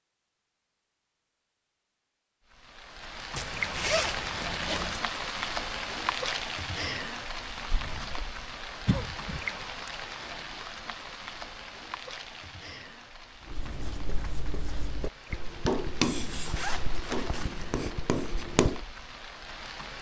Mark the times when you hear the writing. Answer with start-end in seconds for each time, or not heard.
13.4-18.8.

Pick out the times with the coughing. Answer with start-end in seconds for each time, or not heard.
8.8-9.4.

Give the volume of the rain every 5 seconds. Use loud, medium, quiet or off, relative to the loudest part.
loud, loud, medium, medium.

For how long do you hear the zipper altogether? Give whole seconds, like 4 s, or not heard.
3 s.